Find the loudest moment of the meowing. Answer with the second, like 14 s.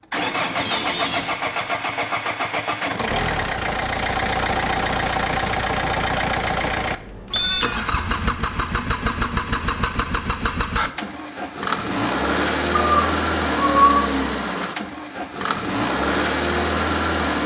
14 s.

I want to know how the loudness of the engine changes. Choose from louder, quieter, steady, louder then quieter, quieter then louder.
steady.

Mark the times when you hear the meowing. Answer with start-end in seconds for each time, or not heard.
0.1-1.3, 7.3-8.2, 12.8-14.2.